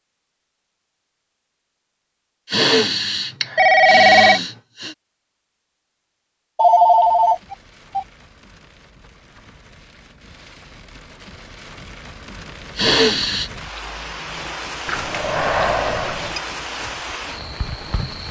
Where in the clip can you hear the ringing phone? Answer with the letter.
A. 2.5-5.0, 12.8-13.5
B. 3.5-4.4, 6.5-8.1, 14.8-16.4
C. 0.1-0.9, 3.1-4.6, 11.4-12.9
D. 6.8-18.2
B.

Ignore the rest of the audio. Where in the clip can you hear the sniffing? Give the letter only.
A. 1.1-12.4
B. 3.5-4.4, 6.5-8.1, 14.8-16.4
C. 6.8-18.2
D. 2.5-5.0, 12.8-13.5
D.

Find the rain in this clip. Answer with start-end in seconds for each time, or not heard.
6.8-18.2.